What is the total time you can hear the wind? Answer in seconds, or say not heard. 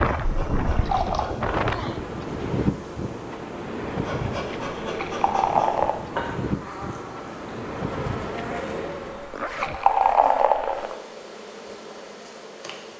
9 s.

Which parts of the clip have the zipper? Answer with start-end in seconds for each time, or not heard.
9.3-9.8.